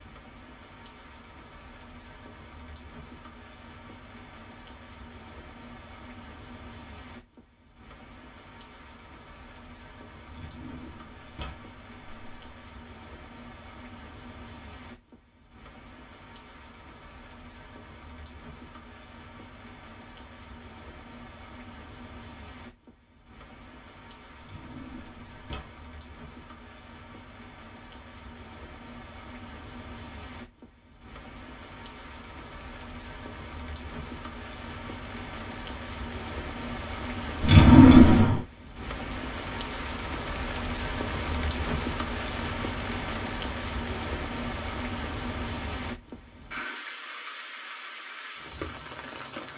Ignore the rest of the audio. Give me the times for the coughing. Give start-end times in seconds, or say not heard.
not heard.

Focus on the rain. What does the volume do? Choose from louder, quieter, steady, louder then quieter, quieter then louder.
louder.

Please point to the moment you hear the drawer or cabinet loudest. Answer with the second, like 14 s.
38 s.